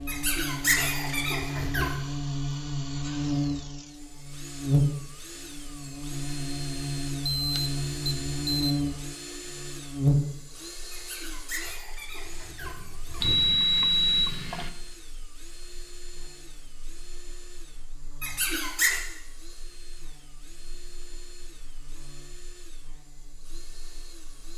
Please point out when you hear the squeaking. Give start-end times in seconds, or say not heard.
0.1-1.9, 10.9-13.3, 18.2-19.0.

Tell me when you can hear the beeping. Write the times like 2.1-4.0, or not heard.
7.2-8.8, 13.2-14.7.